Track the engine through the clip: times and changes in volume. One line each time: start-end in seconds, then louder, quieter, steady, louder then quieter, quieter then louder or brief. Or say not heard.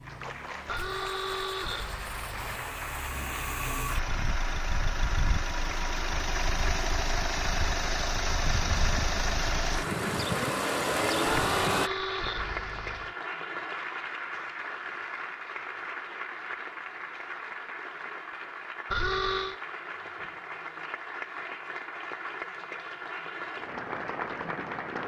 0.0-11.9 louder.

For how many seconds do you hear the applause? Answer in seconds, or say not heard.
25 s.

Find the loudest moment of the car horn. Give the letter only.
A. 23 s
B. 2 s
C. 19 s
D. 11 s
C.